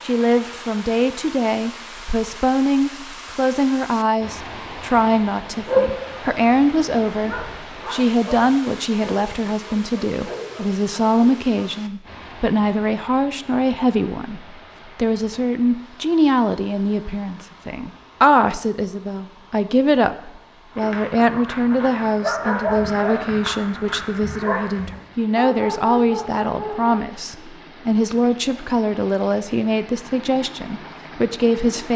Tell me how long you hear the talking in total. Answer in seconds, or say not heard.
32 s.